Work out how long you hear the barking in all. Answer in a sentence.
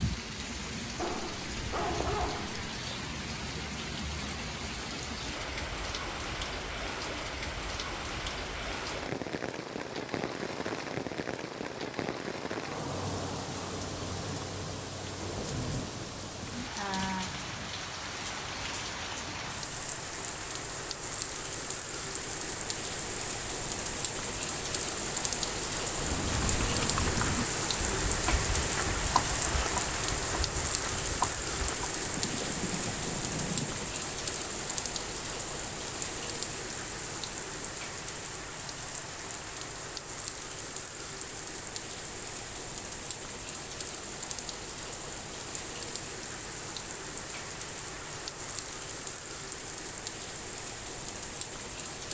The barking can be heard for 2 seconds in total.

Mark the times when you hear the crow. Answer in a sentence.
You can't hear the crow here.